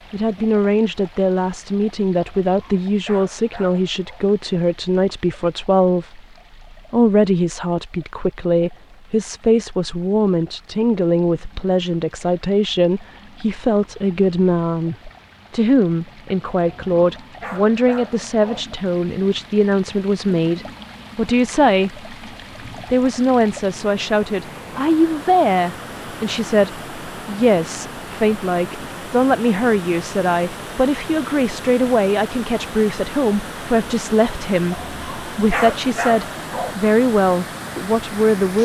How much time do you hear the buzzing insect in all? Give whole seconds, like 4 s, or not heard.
not heard.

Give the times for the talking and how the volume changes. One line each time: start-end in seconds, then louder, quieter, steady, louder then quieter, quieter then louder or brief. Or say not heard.
0.1-22.1 steady
22.9-38.5 steady.